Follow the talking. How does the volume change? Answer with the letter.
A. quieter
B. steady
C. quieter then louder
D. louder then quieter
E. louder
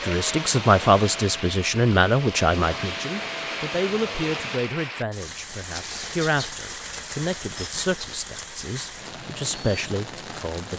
A.